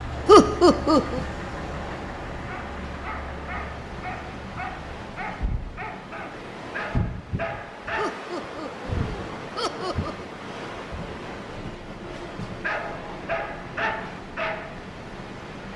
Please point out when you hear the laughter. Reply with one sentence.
You can hear the laughter from 0.2 to 1.2 s and from 8.0 to 10.2 s.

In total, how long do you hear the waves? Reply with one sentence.
The waves can be heard for 16 seconds in total.